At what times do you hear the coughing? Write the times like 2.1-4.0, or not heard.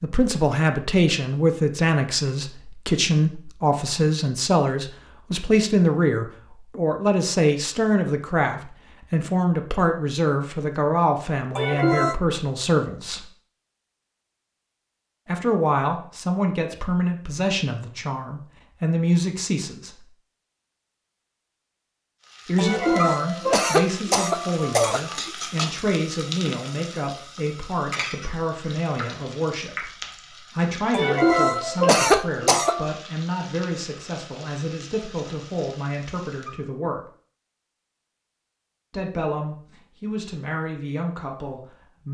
11.6-12.2, 22.6-25.3, 30.9-32.9.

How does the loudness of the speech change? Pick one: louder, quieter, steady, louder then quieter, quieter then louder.
quieter.